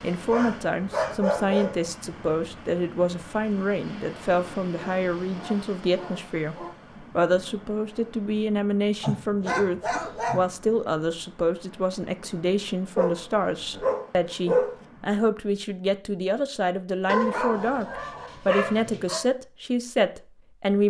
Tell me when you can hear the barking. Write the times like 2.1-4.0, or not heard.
0.3-1.9, 4.8-6.8, 9.0-10.8, 12.9-14.8, 17.1-19.2.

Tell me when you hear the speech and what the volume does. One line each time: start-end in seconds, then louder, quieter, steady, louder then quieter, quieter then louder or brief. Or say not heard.
0.0-20.8 steady.